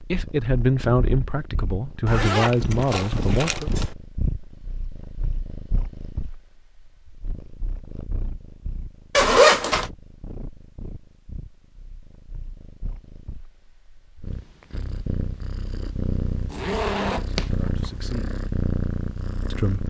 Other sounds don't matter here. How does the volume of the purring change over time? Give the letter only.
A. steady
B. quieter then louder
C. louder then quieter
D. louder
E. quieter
B.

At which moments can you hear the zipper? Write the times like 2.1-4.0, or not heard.
2.0-3.9, 9.2-9.9, 16.5-17.9.